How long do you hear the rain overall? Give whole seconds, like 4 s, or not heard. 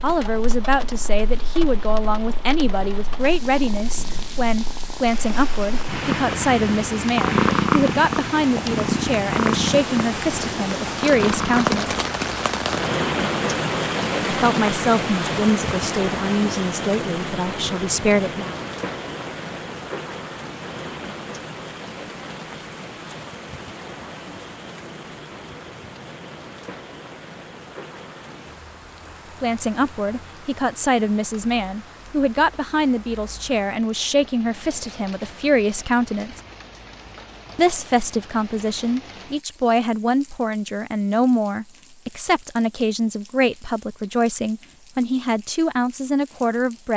47 s.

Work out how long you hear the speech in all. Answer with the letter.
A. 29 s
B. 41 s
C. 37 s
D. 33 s
D.